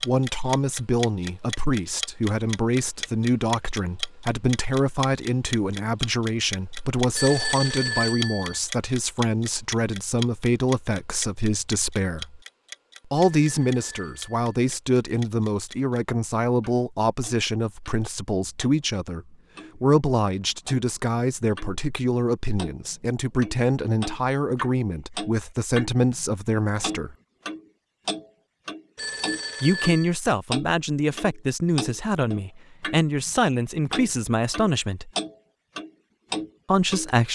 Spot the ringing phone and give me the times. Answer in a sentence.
The ringing phone can be heard from 7.2 to 8.6 s, from 13.2 to 14.3 s and from 28.9 to 30.1 s.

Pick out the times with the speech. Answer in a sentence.
You can hear the speech from 0.1 to 12.4 s, from 13.1 to 27.1 s, from 29.6 to 35.1 s and from 36.6 to 37.3 s.